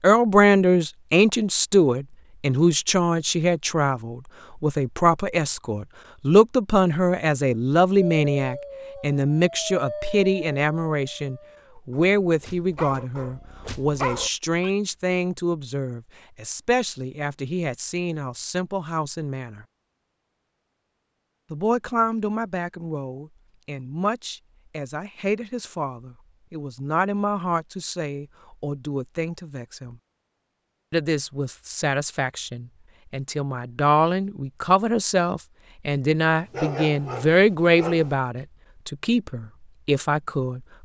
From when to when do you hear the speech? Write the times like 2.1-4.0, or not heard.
0.0-19.6, 21.5-29.9, 30.9-40.6.